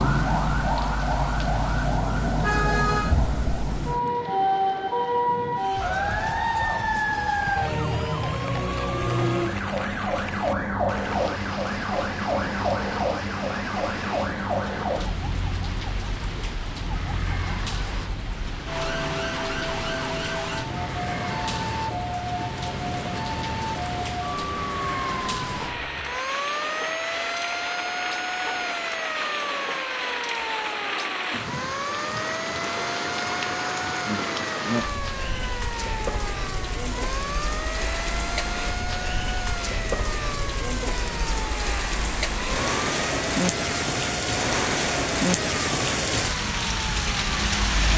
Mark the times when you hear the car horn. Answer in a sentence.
You can hear the car horn from 2.1 to 3.1 s.